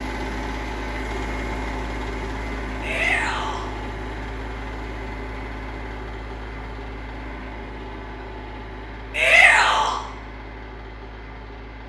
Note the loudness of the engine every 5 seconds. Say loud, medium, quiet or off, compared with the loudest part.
loud, medium, medium.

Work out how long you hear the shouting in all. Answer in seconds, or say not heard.
2 s.